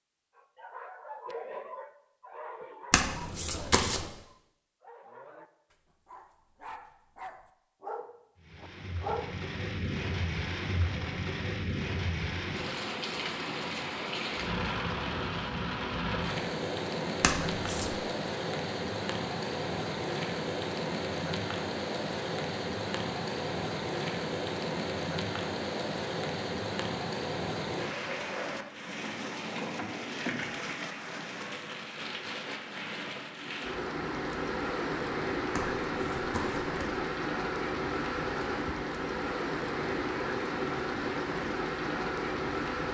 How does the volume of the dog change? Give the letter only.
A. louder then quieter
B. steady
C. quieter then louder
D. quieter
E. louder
C.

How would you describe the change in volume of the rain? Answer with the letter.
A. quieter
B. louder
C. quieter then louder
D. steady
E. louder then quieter
D.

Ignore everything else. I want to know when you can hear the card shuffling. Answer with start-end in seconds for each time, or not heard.
2.9-4.1, 17.2-18.0, 35.5-36.8.